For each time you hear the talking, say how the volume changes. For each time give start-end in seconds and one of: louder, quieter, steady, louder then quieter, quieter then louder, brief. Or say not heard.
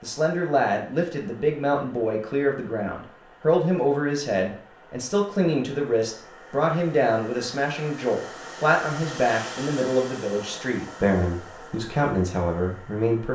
0.0-13.3 steady.